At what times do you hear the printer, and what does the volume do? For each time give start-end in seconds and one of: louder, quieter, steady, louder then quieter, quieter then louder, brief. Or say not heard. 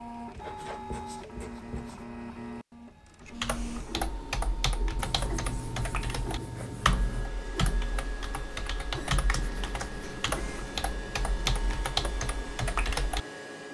0.0-13.6 steady.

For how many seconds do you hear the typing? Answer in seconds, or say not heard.
10 s.